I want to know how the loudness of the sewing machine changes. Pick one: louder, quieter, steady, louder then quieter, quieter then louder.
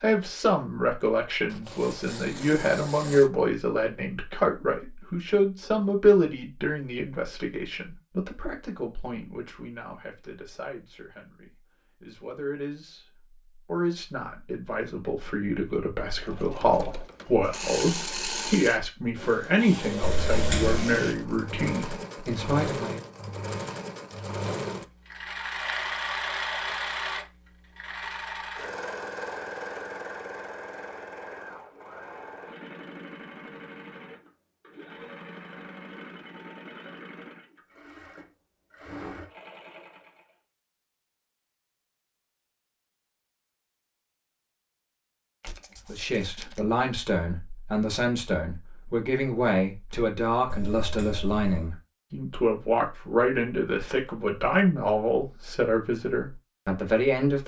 quieter.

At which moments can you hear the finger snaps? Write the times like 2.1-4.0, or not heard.
20.0-20.8, 50.5-51.7.